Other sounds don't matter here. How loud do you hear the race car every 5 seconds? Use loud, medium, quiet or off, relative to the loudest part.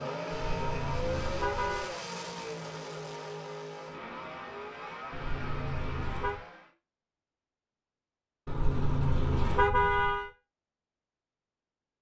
loud, medium, off.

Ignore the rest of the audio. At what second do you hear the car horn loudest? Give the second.
10 s.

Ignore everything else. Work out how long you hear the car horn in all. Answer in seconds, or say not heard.
5 s.